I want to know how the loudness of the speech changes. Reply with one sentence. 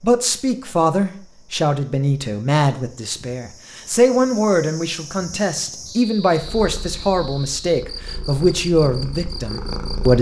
The loudness of the speech stays about the same.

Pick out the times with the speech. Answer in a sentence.
You can hear the speech from 0.0 to 10.1 s.